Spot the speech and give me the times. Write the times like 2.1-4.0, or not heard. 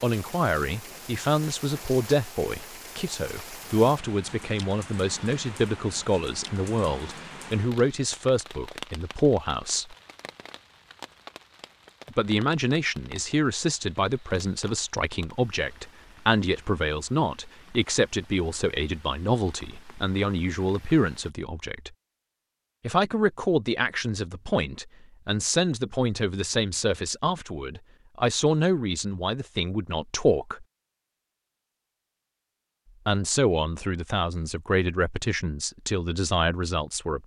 0.0-9.9, 12.1-21.9, 22.8-30.6, 33.0-37.2.